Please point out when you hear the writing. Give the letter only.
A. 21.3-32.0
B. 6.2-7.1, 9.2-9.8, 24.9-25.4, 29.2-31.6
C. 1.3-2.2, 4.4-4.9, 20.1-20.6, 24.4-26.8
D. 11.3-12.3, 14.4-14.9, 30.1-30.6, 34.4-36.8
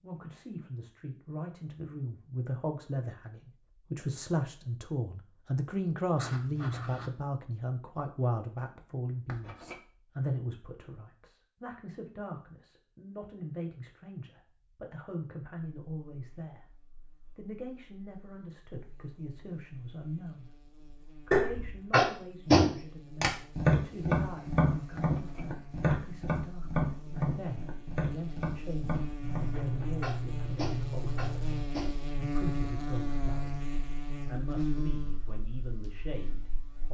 B.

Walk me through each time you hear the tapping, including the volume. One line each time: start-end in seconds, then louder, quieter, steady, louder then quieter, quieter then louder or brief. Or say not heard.
21.3-32.0 quieter.